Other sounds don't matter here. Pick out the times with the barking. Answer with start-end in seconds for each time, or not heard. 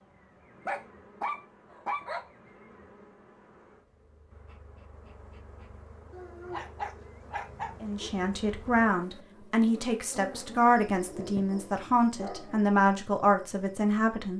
0.6-2.2, 6.1-8.1, 11.1-12.6.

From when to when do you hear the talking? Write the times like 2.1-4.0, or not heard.
7.8-14.3.